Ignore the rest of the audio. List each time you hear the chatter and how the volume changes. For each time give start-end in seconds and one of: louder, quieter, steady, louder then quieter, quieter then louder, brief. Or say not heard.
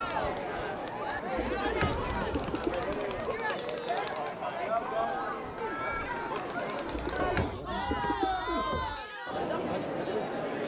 0.0-10.6 steady.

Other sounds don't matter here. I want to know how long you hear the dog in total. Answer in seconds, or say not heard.
not heard.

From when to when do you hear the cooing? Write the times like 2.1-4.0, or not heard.
1.4-2.9, 7.0-9.0.